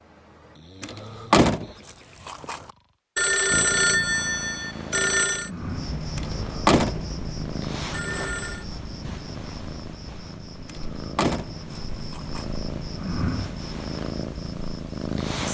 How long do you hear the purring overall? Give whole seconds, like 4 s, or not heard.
12 s.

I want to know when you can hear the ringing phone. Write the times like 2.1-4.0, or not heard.
3.1-5.5, 7.9-8.7.